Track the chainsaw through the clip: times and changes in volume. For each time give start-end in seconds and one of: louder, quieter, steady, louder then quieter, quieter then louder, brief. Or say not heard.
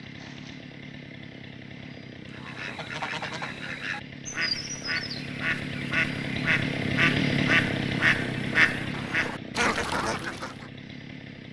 0.0-11.4 louder then quieter.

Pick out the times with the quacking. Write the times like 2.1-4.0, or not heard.
2.2-10.7.